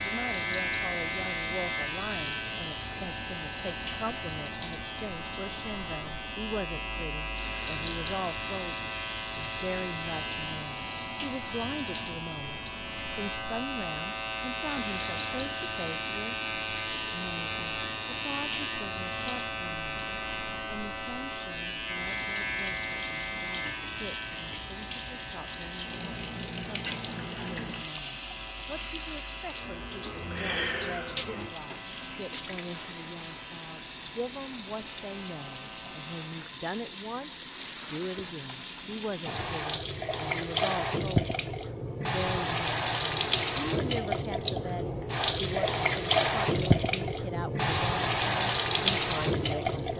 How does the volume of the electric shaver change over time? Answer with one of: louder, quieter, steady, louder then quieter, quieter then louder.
quieter.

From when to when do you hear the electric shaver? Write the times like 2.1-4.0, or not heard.
0.0-36.4.